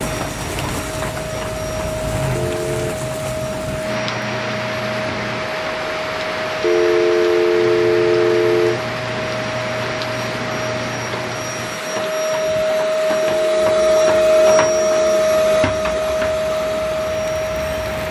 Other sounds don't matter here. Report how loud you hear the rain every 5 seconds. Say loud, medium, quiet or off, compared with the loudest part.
loud, loud, loud, medium.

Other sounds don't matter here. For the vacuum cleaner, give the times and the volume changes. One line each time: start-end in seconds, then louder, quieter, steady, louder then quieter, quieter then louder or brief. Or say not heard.
0.0-18.0 louder.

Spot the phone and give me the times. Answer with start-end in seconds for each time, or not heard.
2.4-3.0, 6.6-8.8, 13.2-15.2.